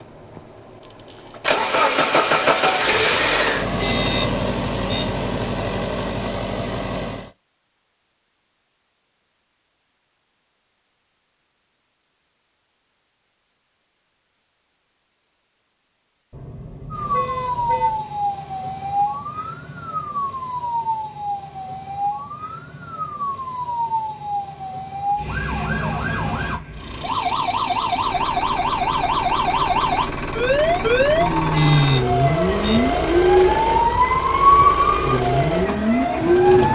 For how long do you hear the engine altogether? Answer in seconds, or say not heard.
17 s.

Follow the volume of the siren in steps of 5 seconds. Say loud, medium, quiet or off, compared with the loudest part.
off, off, off, medium, medium, medium, loud, loud.